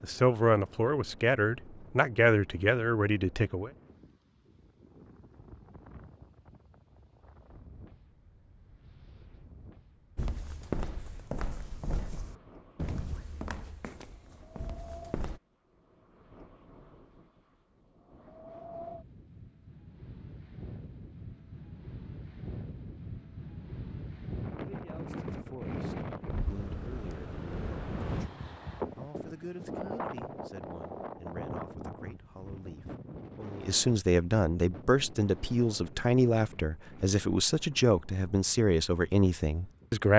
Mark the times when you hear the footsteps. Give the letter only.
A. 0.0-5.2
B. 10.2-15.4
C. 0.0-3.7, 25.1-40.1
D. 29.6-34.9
B.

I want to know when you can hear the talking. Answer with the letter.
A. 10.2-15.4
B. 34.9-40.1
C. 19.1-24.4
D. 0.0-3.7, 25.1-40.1
D.